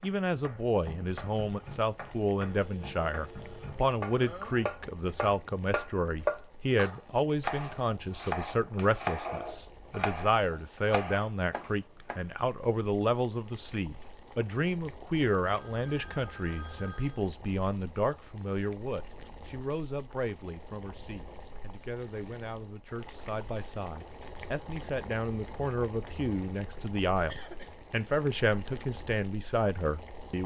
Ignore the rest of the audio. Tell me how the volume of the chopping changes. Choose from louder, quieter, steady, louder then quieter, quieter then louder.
louder then quieter.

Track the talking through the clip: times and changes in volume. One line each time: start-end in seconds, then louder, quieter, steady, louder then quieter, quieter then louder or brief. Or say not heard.
0.0-30.4 quieter then louder.